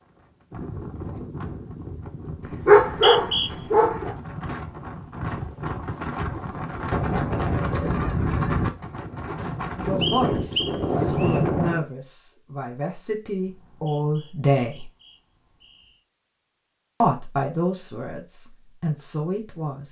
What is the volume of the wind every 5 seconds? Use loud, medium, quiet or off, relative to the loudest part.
quiet, loud, loud, off.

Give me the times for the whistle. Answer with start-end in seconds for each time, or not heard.
2.9-3.5, 10.0-11.4, 13.4-16.0.